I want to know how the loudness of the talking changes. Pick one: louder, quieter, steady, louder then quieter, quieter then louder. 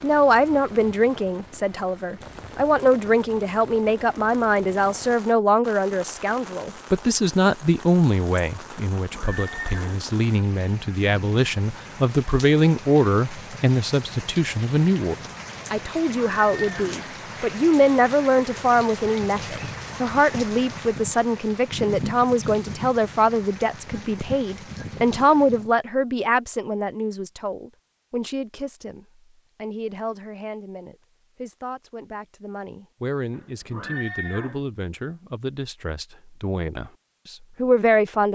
quieter.